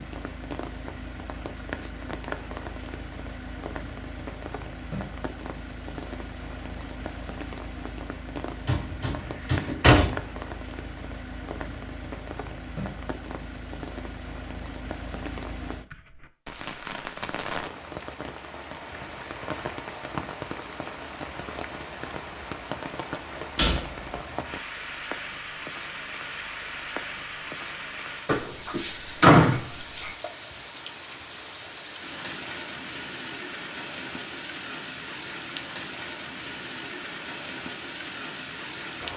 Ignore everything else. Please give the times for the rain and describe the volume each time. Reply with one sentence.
The rain can be heard from 0.0 to 39.1 s, at a steady volume.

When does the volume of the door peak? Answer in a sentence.
The loudest moment of the door is at 29 seconds.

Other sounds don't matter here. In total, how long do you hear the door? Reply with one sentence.
You can hear the door for 4 seconds altogether.